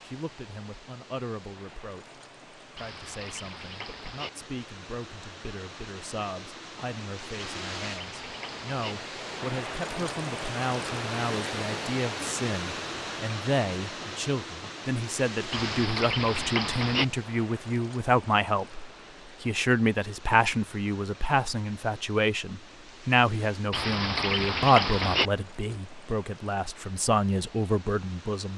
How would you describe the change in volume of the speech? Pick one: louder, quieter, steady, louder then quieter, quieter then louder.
louder.